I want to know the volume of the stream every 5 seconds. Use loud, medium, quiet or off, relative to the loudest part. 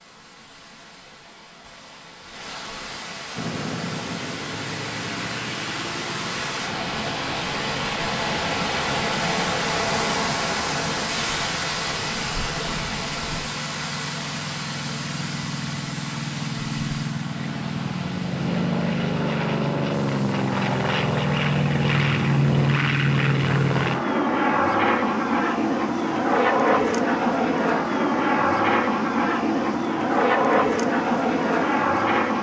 medium, loud, loud, medium, quiet, quiet, quiet.